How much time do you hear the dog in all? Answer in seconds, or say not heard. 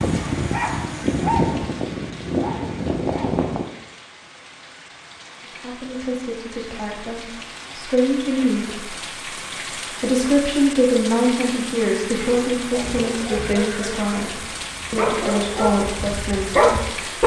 8 s.